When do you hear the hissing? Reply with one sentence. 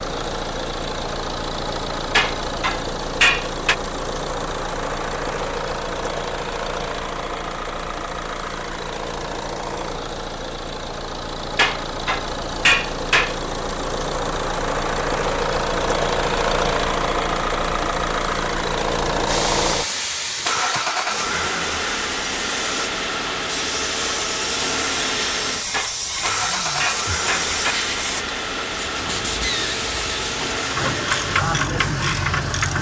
You can hear the hissing from 19.2 to 32.5 s.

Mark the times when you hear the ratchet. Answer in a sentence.
You can hear the ratchet from 30.6 to 32.7 s.